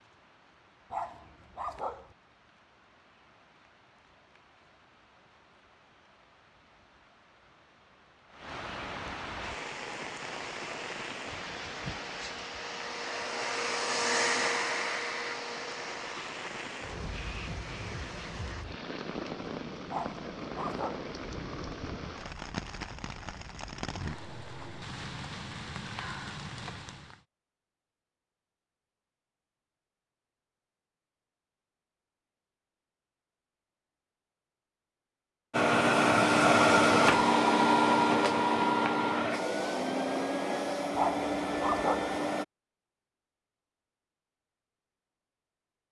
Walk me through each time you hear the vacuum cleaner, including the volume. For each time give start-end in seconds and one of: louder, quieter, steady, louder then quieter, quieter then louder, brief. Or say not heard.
9.4-18.6 louder then quieter
35.5-42.5 quieter.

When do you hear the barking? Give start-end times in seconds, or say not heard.
0.9-2.1, 19.9-21.1, 40.9-42.2.